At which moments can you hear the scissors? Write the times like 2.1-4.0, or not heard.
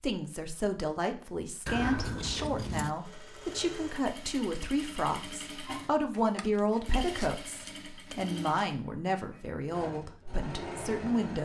1.6-3.0, 6.1-8.2.